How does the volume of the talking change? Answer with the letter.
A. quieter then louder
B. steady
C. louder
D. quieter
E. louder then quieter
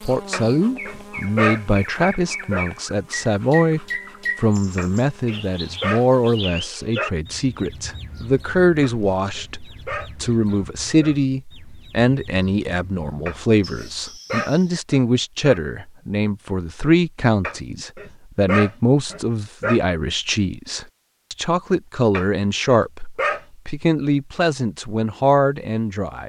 B.